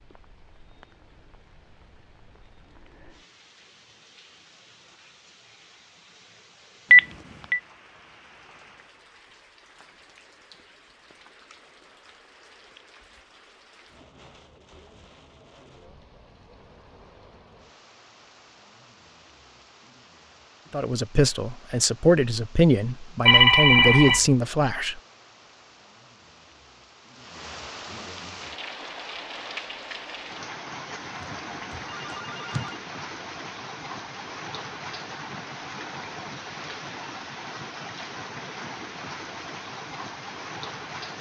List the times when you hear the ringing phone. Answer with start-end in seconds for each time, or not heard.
6.9-7.6, 23.2-24.2, 31.1-32.8.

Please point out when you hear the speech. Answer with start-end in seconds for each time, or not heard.
20.7-25.0.